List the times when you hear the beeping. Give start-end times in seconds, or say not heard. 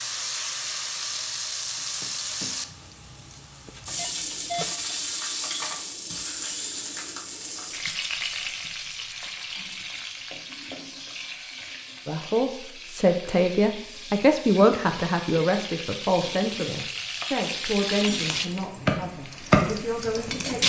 3.6-5.0.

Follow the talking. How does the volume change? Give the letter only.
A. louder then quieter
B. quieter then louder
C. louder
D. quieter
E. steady
D.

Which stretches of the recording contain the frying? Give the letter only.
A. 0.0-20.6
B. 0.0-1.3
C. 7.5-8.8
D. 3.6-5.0
A.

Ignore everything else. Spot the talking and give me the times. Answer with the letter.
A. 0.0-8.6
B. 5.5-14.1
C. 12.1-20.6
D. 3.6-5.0
C.